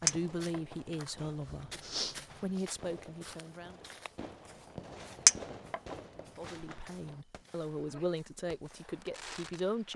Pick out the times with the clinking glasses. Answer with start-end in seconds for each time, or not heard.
0.1-0.6, 5.2-5.8.